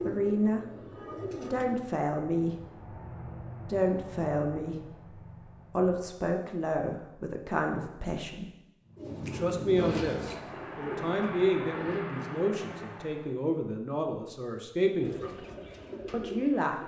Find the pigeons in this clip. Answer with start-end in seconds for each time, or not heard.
0.0-1.8, 8.9-12.0, 15.0-16.8.